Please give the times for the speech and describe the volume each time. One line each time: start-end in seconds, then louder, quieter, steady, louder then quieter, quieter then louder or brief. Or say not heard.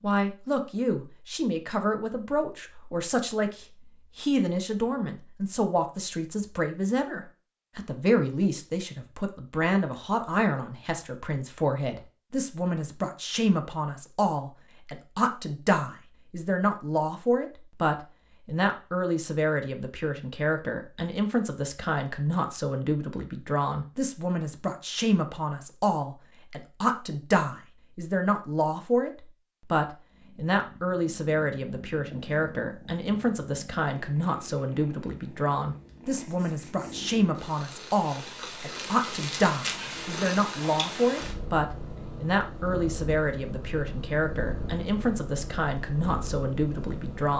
0.0-47.3 steady.